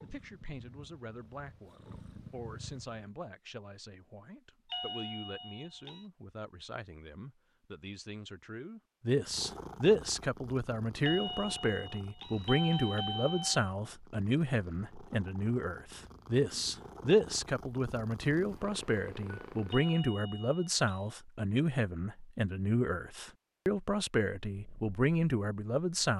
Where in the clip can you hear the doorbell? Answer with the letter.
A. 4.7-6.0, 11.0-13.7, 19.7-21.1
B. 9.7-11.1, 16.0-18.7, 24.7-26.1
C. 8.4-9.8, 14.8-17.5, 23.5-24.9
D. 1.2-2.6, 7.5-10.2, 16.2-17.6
A.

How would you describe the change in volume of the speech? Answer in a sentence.
The volume of the speech goes up.